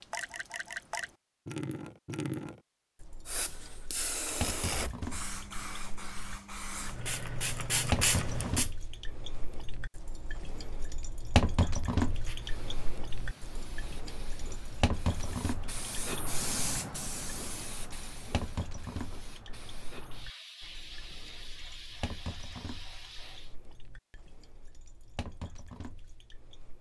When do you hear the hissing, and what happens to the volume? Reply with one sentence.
You can hear the hissing from 3.2 to 8.7 s, getting quieter then louder; and from 11.9 to 23.6 s, getting louder then quieter.